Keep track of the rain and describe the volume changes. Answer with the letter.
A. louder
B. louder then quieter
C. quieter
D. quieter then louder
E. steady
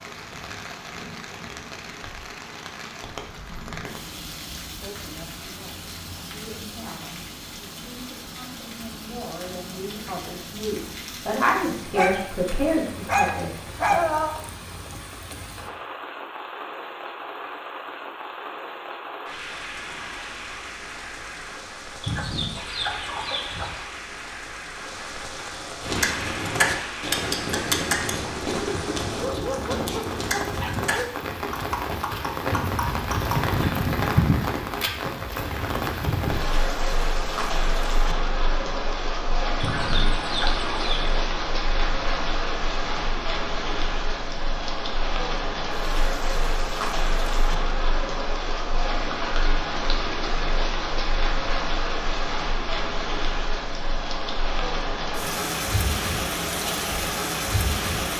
A.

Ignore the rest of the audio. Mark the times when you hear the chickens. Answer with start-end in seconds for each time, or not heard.
22.0-23.9, 39.6-41.2.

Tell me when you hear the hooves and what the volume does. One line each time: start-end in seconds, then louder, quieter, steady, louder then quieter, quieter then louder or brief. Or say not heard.
25.8-33.5 quieter.